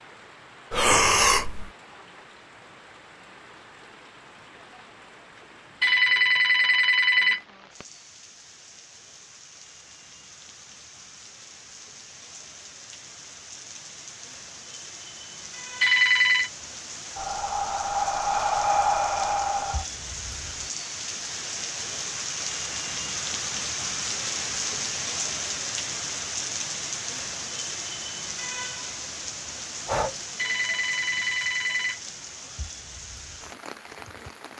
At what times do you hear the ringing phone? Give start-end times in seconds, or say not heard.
5.8-7.4, 15.8-16.5, 30.4-32.0.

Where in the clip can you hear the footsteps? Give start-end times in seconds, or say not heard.
not heard.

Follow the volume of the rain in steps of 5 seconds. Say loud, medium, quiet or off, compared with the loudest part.
quiet, quiet, quiet, medium, loud, loud, medium.